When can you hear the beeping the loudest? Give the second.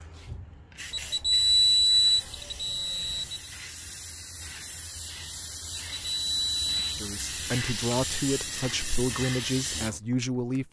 2 s.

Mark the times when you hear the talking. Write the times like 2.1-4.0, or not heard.
6.8-10.6.